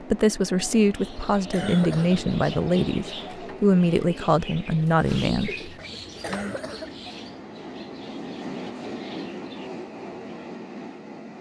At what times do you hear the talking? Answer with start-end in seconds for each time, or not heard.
0.0-5.5.